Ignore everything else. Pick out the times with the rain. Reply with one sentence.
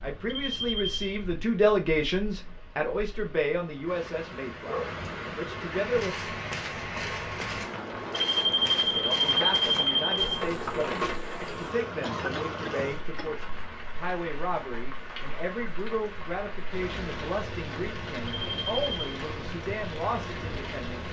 The rain can be heard from 0.0 to 21.0 s.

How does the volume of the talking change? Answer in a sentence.
The volume of the talking goes down.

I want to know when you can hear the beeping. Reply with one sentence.
The beeping can be heard from 0.3 to 1.1 s, from 8.1 to 10.4 s and from 18.4 to 19.0 s.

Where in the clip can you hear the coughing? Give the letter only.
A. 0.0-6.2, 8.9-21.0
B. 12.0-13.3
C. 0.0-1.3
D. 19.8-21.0
B.